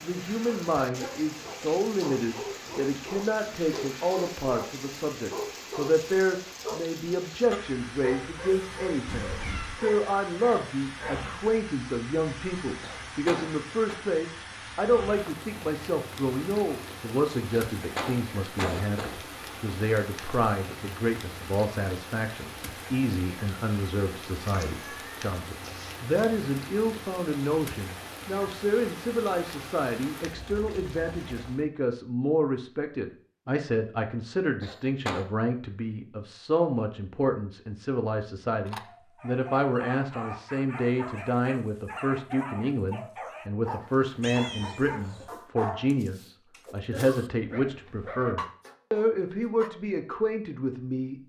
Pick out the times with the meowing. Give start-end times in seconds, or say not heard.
9.1-9.8, 24.4-26.2, 44.2-45.4.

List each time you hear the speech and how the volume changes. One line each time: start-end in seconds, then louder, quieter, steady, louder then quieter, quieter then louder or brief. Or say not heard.
0.0-51.2 steady.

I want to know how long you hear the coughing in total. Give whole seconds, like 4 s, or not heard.
3 s.